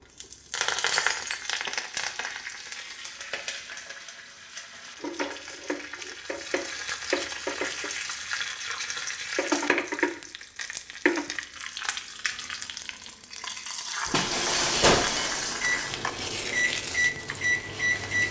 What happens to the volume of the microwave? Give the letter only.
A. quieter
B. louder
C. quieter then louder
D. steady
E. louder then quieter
C.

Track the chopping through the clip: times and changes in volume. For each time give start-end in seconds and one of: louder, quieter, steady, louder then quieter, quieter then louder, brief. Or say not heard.
not heard.